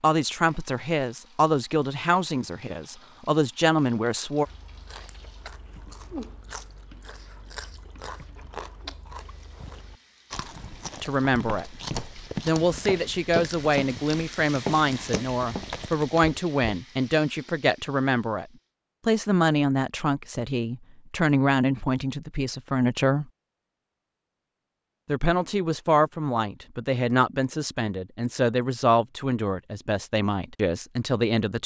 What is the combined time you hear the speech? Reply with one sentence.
You can hear the speech for 22 seconds altogether.